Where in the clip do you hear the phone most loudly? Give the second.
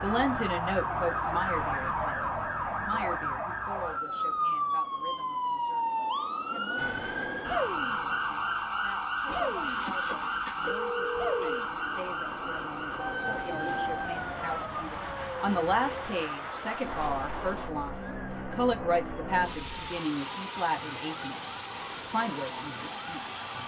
11 s.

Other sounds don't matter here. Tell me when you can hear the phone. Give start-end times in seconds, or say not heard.
9.2-11.7.